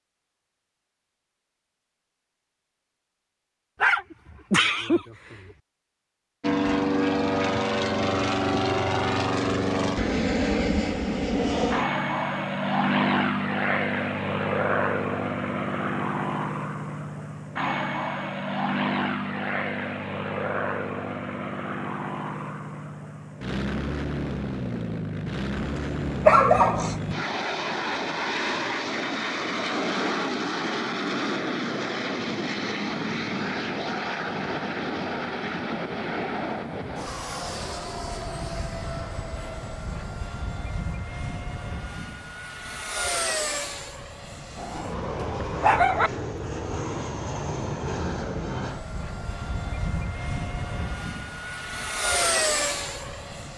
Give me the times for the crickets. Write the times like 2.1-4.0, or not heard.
not heard.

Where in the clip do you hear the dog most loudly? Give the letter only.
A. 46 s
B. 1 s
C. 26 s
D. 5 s
C.